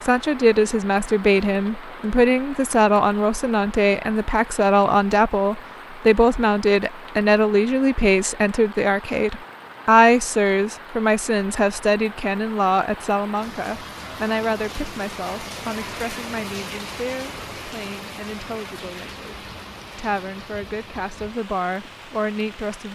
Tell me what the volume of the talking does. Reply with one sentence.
The volume of the talking goes down.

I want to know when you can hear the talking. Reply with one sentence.
The talking can be heard from 0.0 to 22.8 s.